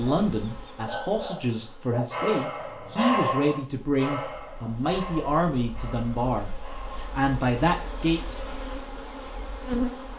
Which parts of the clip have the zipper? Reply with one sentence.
You can't hear the zipper here.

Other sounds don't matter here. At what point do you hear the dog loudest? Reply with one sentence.
The loudest moment of the dog is at 3 seconds.